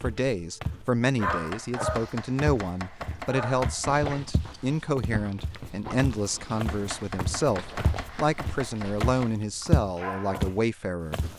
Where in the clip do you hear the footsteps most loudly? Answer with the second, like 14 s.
10 s.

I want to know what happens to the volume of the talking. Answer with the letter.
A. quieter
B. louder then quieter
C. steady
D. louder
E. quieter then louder
C.